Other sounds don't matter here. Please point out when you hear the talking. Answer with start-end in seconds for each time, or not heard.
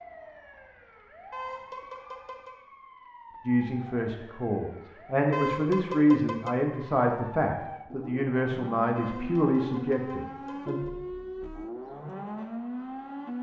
3.5-10.8.